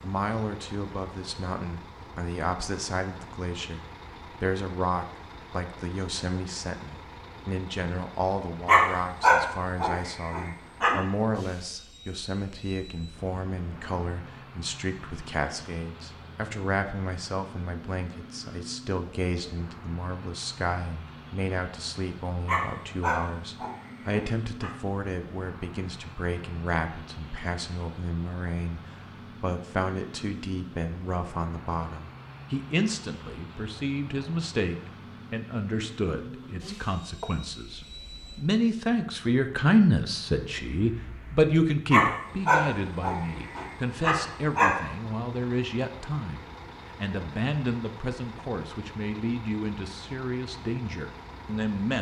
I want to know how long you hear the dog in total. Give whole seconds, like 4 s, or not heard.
7 s.